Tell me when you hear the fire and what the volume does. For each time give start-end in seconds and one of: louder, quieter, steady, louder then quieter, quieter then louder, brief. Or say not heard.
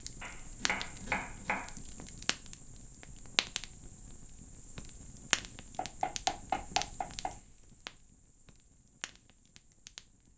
0.0-10.3 louder then quieter.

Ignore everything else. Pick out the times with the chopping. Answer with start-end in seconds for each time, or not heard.
0.2-1.7, 5.8-7.3.